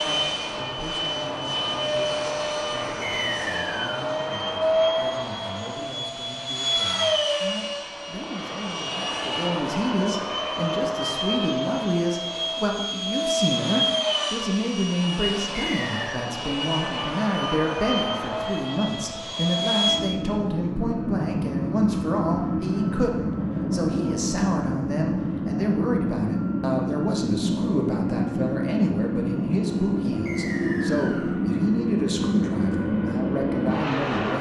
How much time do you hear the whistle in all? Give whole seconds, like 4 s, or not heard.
3 s.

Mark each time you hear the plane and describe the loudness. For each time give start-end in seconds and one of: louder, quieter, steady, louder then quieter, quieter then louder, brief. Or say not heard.
0.0-34.3 steady.